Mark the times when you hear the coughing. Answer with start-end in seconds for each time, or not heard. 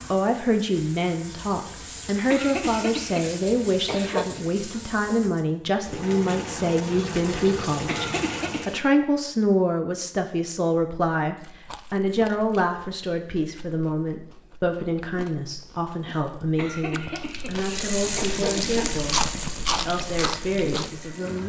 2.3-4.2, 7.8-8.8, 16.6-18.9.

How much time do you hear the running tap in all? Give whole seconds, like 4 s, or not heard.
13 s.